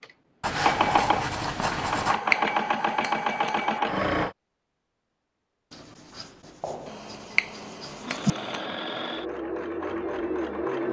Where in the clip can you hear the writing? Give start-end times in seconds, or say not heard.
0.4-2.2, 5.7-8.3.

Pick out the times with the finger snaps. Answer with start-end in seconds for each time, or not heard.
2.0-3.8, 6.8-8.7.